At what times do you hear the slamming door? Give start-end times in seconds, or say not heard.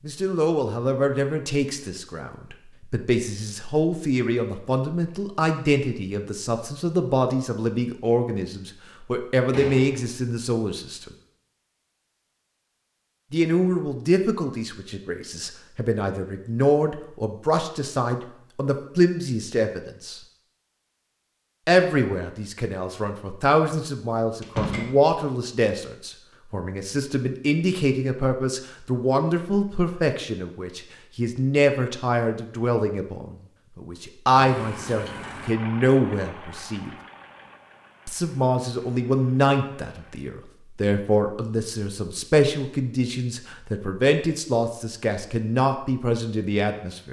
9.5-10.2, 24.4-24.9.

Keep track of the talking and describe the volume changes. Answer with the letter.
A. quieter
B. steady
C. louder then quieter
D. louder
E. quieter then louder
B.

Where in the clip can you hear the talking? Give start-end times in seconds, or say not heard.
0.1-11.1, 13.3-20.2, 21.6-37.0, 38.0-47.0.